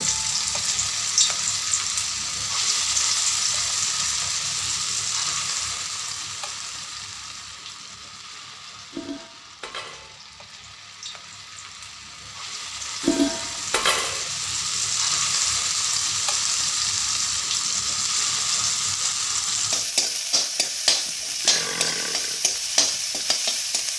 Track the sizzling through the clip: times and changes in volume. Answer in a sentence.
The sizzling can be heard from 0.0 to 23.9 s, getting quieter then louder.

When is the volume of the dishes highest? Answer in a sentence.
The volume of the dishes peaks at 13 seconds.